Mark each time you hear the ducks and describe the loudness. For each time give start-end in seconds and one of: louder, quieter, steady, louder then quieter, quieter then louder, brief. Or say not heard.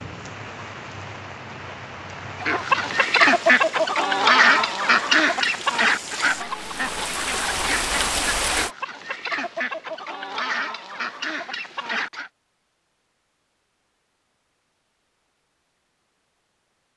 2.4-12.3 quieter.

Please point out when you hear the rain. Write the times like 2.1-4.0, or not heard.
0.0-8.7.